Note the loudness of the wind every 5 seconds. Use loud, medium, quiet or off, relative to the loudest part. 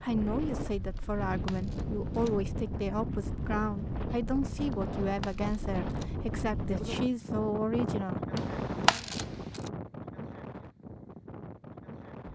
loud, loud, medium.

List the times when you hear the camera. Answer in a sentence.
The camera can be heard from 0.9 to 2.4 s, from 4.7 to 6.2 s and from 8.3 to 9.7 s.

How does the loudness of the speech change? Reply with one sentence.
The loudness of the speech stays about the same.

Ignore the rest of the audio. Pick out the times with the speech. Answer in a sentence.
The speech can be heard from 0.0 to 8.2 s.